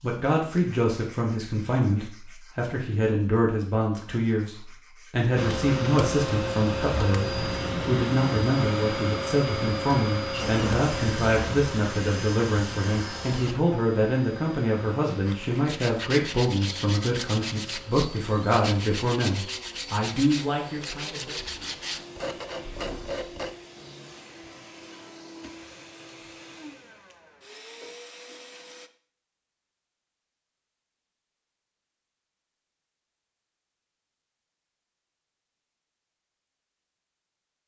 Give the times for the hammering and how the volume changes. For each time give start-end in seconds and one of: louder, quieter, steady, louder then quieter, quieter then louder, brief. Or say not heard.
not heard.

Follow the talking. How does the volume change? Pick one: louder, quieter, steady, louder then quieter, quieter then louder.
steady.